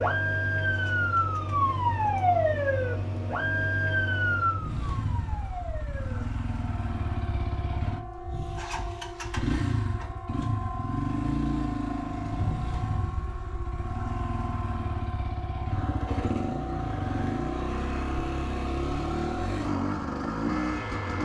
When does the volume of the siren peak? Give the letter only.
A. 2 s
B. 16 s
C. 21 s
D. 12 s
A.